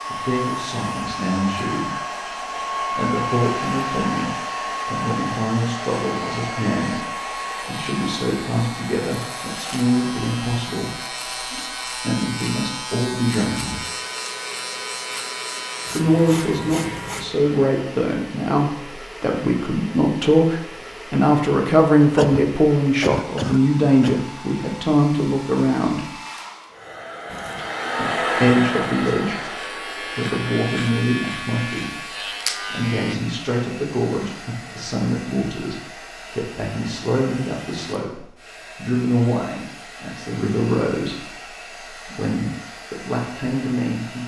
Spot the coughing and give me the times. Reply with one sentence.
The coughing can be heard from 22.0 to 24.2 s.